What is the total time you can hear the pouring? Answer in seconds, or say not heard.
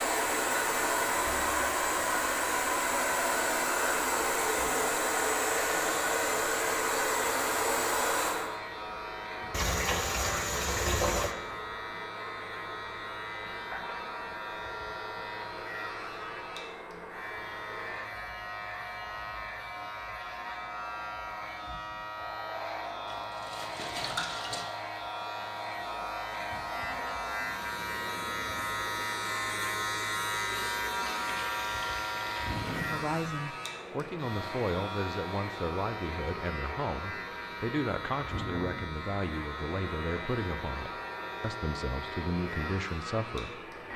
5 s.